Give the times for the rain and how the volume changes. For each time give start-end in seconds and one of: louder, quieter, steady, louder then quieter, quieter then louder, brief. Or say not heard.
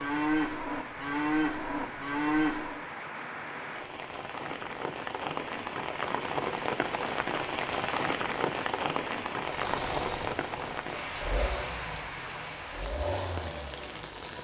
0.0-14.3 louder then quieter.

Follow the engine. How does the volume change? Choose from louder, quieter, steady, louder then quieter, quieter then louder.
steady.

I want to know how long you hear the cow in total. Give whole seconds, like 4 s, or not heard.
3 s.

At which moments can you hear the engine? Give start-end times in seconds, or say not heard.
9.4-14.3.